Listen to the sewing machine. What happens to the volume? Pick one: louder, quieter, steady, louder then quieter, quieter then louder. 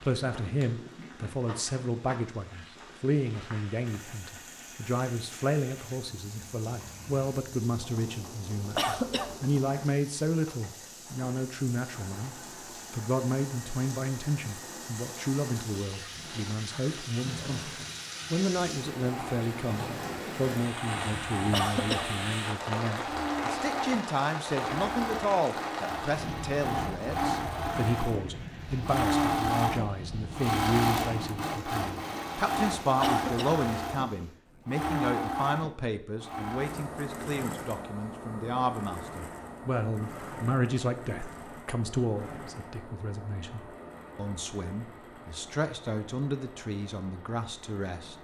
louder then quieter.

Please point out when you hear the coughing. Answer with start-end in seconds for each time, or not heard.
8.7-9.3, 21.5-22.1, 33.0-33.6.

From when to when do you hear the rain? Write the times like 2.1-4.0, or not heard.
0.0-34.4.